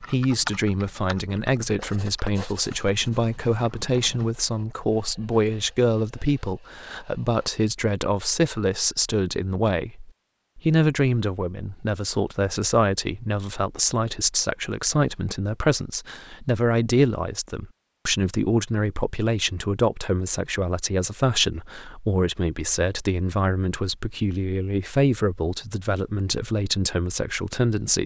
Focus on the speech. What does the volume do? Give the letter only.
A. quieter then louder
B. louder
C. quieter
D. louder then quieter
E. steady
E.